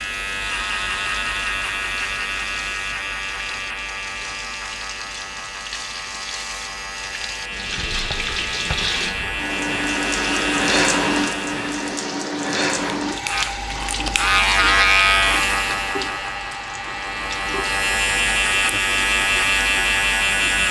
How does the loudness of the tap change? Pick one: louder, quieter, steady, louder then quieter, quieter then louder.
louder then quieter.